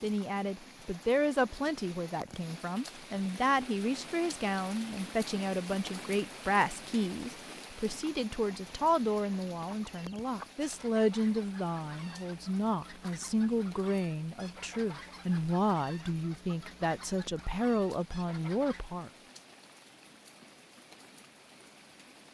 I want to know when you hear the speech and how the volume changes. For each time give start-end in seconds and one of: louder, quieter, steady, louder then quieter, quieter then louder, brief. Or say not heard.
0.0-19.1 steady.